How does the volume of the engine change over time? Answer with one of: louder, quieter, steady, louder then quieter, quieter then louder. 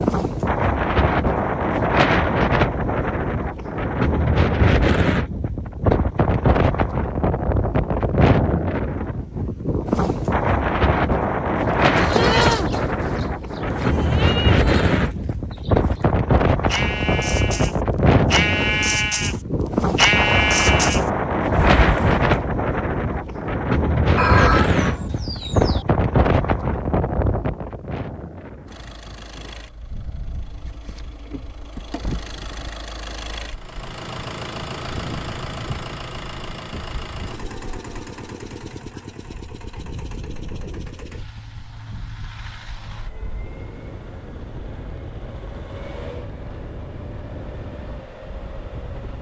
louder then quieter.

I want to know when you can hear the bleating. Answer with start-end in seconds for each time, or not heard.
11.9-22.4.